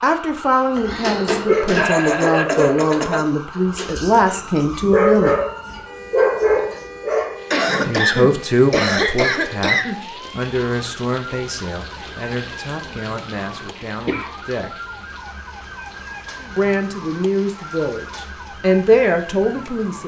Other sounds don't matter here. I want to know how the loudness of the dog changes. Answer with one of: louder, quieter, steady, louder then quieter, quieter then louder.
quieter then louder.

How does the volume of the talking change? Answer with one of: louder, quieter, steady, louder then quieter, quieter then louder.
quieter then louder.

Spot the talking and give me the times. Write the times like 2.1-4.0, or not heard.
0.0-5.3, 7.8-14.8, 16.6-20.0.